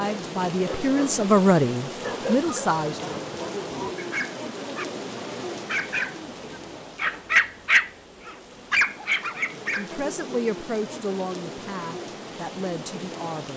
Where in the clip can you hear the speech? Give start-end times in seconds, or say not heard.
0.0-3.4, 9.8-13.5.